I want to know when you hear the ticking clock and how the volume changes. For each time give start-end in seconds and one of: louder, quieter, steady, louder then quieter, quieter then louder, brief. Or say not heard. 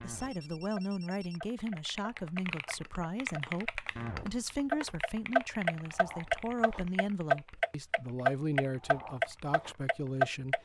0.0-10.5 louder.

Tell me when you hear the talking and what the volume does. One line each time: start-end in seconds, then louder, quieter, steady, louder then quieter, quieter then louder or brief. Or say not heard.
0.0-10.5 steady.